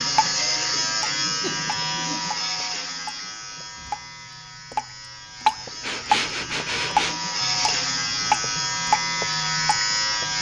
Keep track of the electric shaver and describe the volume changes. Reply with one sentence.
The volume of the electric shaver goes down, then up.